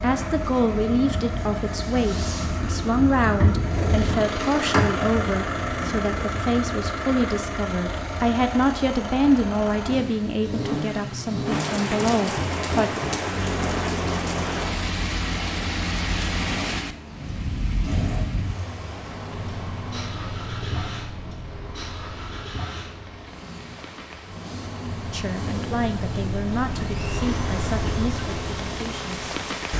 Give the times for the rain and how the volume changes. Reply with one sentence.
You can hear the rain from 11.4 to 29.7 s, getting quieter then louder.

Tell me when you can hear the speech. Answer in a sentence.
The speech can be heard from 0.0 to 12.9 s and from 25.1 to 29.1 s.